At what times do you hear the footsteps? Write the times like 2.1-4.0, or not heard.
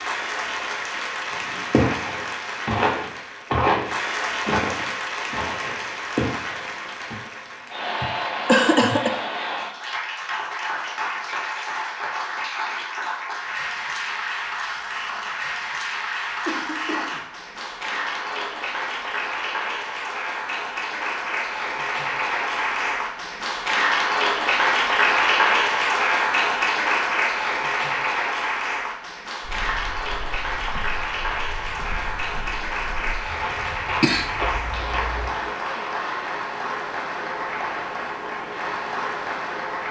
1.3-7.2, 29.4-35.3.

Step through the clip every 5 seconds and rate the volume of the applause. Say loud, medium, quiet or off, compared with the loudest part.
medium, medium, medium, medium, loud, loud, medium, medium.